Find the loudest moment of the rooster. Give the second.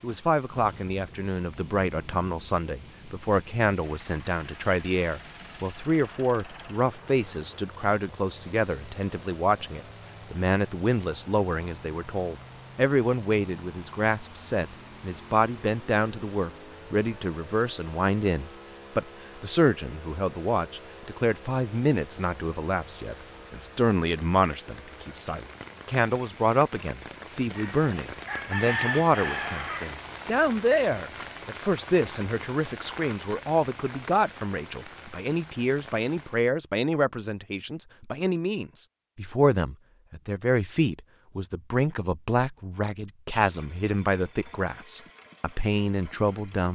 29 s.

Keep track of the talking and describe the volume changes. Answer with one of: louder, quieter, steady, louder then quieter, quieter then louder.
steady.